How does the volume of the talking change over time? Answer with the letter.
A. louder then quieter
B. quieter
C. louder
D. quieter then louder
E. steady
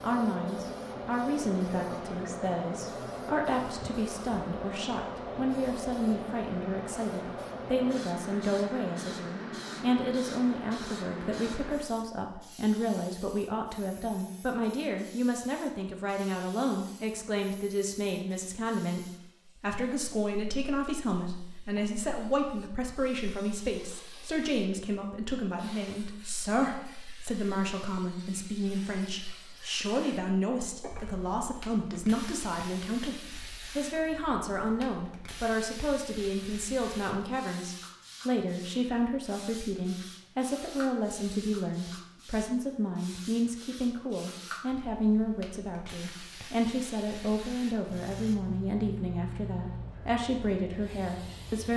E.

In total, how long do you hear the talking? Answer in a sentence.
You can hear the talking for 52 seconds altogether.